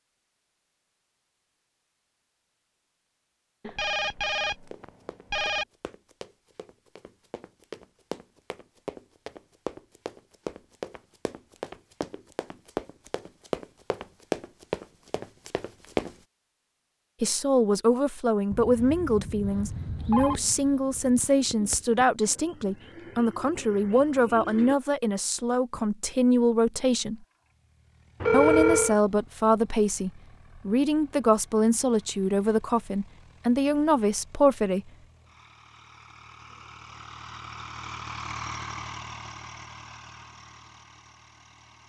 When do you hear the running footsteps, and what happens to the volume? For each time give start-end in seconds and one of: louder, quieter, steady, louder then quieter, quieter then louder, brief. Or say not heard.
4.5-16.1 louder.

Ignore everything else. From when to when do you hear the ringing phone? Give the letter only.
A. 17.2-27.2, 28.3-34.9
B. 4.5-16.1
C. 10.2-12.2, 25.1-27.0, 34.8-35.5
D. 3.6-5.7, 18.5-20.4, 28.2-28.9
D.